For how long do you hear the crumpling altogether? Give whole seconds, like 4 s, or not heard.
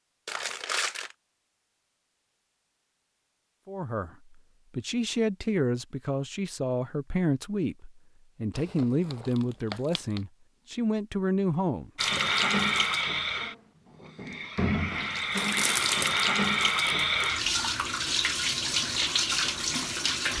4 s.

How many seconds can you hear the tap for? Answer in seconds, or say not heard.
8 s.